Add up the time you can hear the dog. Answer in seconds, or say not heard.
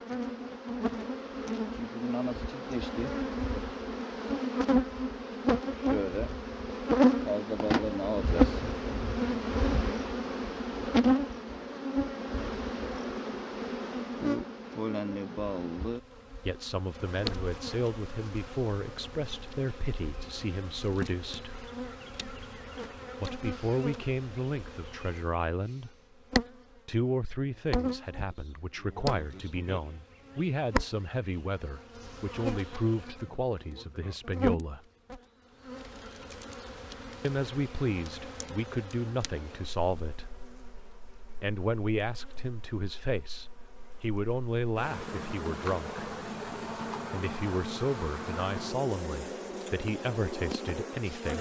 not heard.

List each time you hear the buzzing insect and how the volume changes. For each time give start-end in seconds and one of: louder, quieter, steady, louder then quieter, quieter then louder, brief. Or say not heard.
0.0-51.3 quieter.